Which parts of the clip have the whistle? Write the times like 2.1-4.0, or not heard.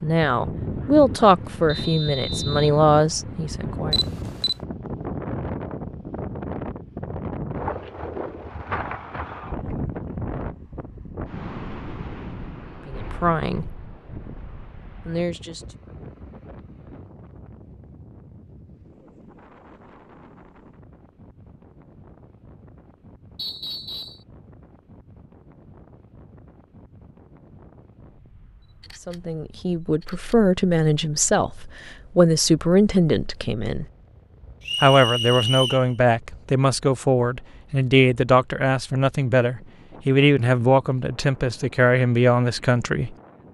1.6-2.8, 23.4-24.2, 34.6-35.9.